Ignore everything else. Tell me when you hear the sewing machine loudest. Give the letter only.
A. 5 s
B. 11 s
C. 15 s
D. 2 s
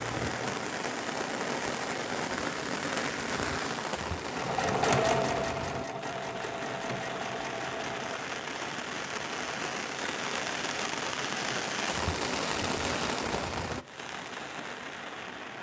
A.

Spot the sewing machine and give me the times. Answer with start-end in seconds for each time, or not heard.
4.2-8.3.